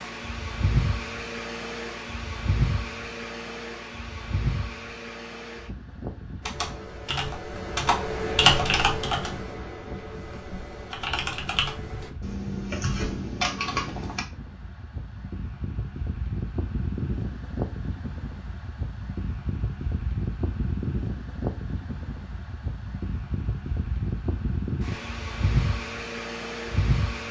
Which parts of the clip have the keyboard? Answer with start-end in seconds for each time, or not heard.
6.4-14.2.